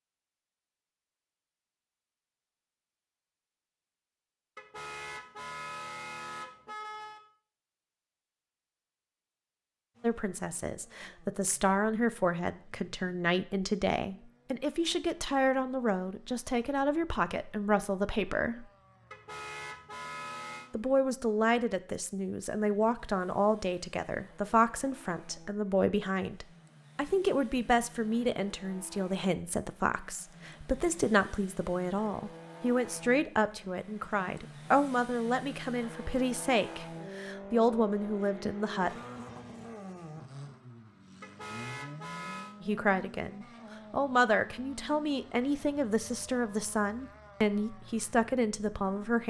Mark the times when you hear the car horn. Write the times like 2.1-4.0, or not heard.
4.5-7.2, 19.1-20.7, 41.2-42.5.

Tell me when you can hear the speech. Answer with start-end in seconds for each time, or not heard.
10.0-18.6, 20.7-39.0, 42.6-49.2.